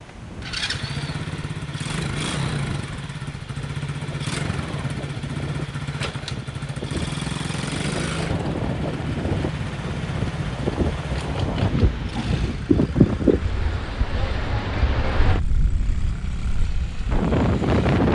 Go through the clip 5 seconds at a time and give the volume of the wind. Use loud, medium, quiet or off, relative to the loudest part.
quiet, medium, loud, loud.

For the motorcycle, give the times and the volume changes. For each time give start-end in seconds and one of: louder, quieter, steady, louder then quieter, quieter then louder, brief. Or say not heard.
0.0-18.0 quieter.